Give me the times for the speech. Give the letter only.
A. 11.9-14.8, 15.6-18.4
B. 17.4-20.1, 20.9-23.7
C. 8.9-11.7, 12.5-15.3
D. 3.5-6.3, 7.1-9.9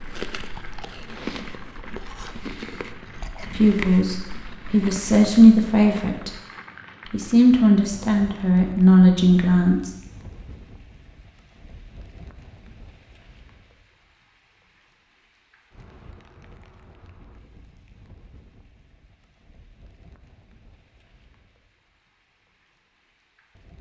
D.